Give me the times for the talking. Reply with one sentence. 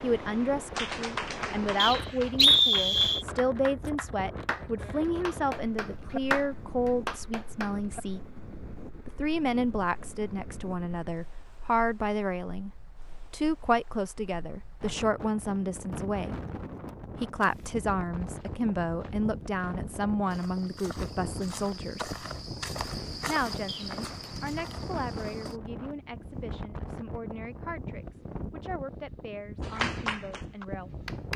You can hear the talking from 0.0 to 8.2 s, from 9.1 to 12.7 s, from 13.3 to 16.4 s, from 17.1 to 22.1 s and from 23.2 to 30.9 s.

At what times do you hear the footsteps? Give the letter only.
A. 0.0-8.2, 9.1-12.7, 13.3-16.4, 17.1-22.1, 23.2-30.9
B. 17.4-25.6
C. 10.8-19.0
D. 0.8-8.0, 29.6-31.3
B.